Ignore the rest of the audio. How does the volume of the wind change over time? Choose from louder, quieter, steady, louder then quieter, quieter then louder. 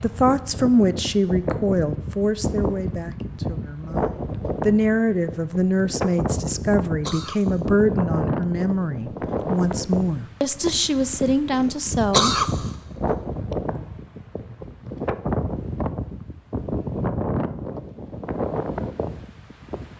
steady.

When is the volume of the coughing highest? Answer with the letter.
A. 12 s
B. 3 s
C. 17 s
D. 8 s
A.